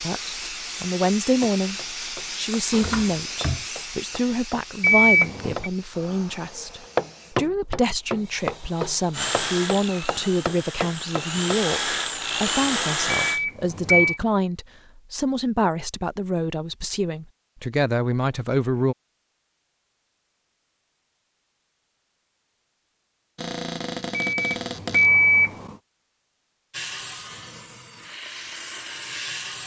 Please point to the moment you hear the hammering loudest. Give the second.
7 s.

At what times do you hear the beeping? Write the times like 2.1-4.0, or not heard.
4.8-5.7, 13.1-14.2, 24.1-25.8.